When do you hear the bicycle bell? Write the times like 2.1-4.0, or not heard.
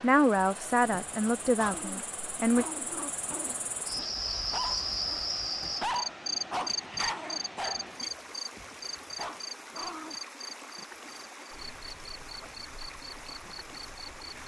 not heard.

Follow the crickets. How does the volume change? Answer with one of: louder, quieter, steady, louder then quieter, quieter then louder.
louder then quieter.